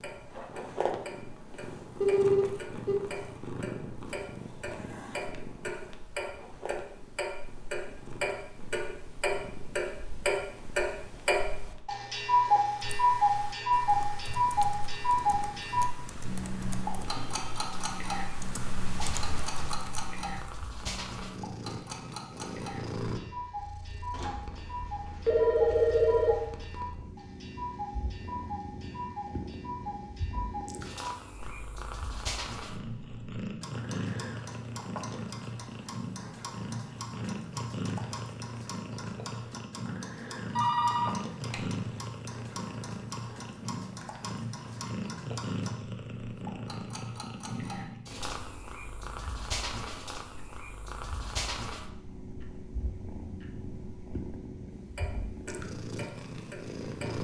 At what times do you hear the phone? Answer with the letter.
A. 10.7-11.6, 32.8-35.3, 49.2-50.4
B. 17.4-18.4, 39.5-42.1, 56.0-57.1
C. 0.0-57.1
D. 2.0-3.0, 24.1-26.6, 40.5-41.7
D.